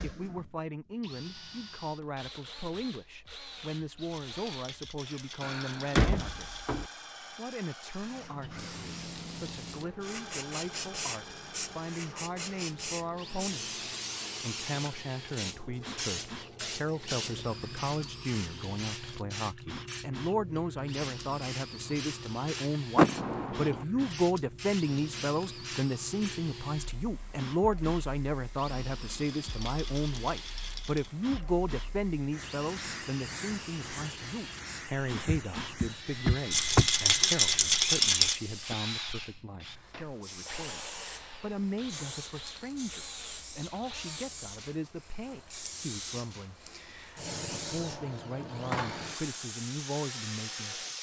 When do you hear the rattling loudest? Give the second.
38 s.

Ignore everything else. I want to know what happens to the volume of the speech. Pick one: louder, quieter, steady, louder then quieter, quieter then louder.
louder then quieter.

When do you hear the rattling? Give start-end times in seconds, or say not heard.
4.0-6.7, 29.2-31.1, 36.5-38.4.